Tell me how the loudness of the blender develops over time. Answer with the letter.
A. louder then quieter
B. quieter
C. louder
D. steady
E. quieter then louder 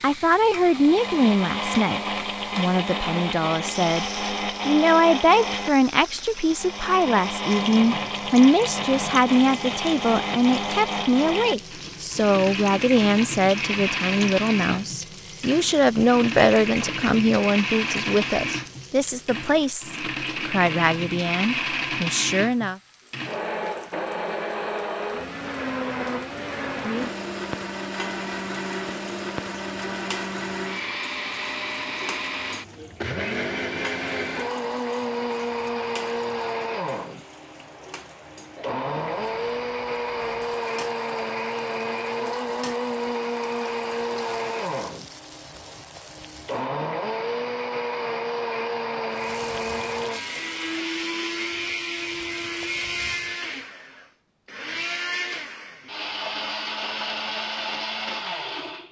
D.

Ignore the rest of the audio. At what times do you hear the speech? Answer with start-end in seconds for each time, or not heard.
0.0-22.8.